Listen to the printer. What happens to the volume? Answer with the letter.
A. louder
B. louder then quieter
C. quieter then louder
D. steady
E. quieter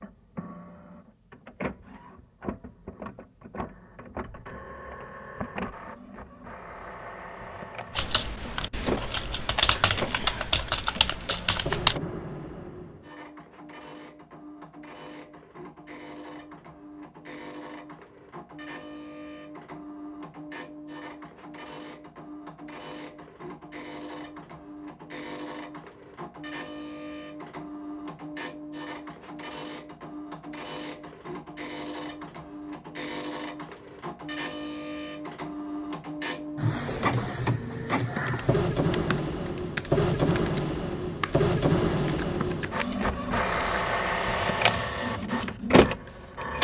A.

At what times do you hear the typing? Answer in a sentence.
The typing can be heard from 8.0 to 12.0 s and from 38.0 to 44.3 s.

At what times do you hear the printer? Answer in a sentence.
The printer can be heard from 0.0 to 46.5 s.